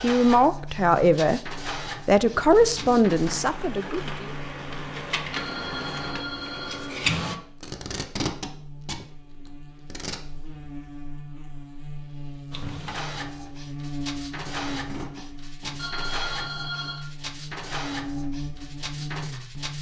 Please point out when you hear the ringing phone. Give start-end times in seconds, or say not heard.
5.3-7.0, 15.8-17.1.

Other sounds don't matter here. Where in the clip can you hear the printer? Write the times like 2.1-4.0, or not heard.
0.0-7.3, 12.5-19.7.